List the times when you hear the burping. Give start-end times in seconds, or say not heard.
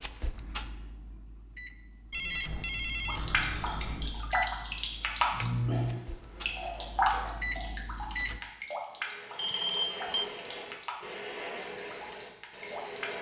not heard.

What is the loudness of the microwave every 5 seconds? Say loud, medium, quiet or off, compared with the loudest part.
medium, loud, off.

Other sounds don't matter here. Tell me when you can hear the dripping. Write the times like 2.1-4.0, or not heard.
3.0-13.1.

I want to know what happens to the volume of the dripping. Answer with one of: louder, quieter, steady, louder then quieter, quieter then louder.
quieter.